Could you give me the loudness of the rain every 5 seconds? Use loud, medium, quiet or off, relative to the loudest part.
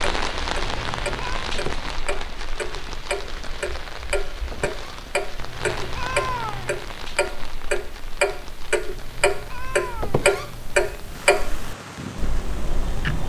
loud, medium, medium.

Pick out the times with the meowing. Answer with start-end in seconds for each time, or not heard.
0.6-1.5, 5.3-6.9, 8.9-10.9.